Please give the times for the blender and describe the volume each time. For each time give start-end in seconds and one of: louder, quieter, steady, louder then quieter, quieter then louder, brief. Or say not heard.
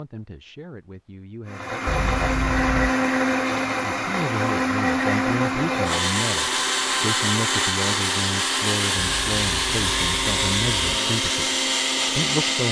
1.4-12.6 steady.